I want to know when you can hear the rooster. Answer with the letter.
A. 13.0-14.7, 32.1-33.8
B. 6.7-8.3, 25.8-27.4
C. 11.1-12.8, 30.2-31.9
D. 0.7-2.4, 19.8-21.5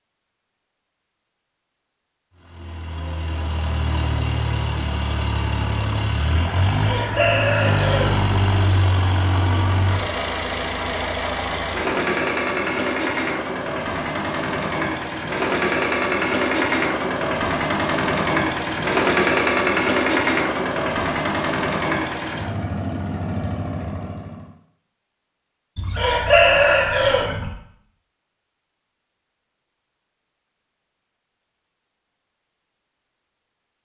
B.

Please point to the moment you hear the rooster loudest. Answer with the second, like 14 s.
26 s.